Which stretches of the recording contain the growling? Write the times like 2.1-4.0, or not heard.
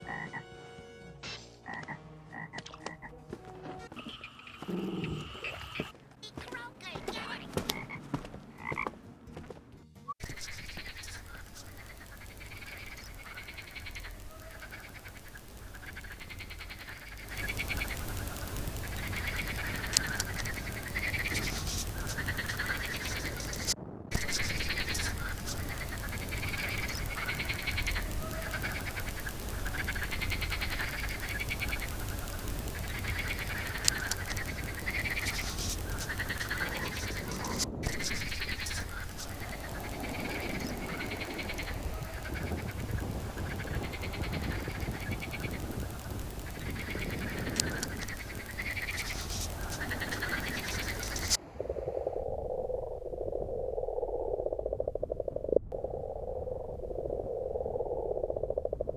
4.7-5.3, 36.6-37.7.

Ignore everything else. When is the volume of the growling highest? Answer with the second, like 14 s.
5 s.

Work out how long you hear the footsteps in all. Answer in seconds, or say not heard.
8 s.